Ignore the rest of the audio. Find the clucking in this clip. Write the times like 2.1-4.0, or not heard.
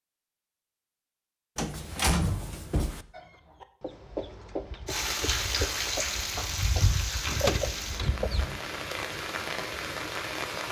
3.1-8.6.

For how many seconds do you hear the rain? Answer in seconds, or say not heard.
6 s.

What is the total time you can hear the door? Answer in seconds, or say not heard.
2 s.